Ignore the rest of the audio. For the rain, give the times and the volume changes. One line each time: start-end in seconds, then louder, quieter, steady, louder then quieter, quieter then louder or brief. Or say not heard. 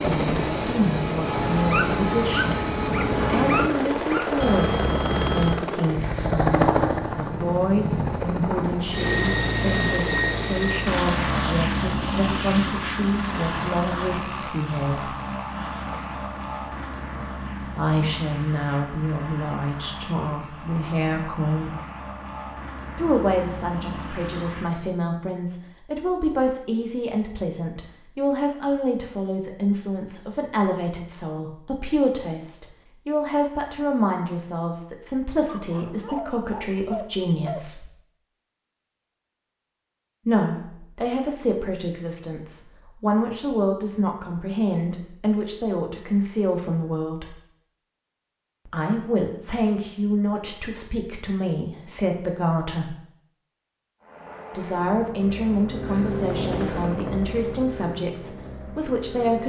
not heard.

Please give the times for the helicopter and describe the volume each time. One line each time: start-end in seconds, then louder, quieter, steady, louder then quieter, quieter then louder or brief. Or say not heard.
0.0-24.8 quieter
54.0-59.4 louder then quieter.